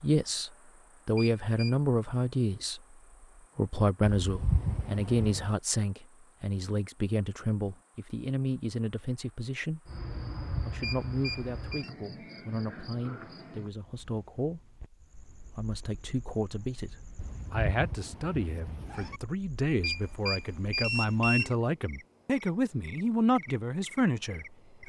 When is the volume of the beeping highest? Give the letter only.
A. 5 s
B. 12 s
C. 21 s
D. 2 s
C.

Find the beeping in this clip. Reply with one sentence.
The beeping can be heard from 1.1 to 1.8 s, from 10.8 to 11.9 s and from 19.8 to 21.5 s.